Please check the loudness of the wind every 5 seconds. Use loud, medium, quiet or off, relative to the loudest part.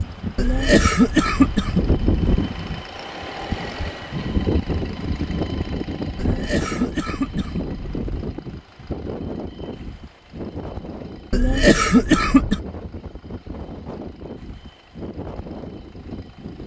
loud, loud, medium, medium.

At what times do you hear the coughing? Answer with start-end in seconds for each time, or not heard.
0.3-2.4, 6.2-8.0, 11.3-12.6.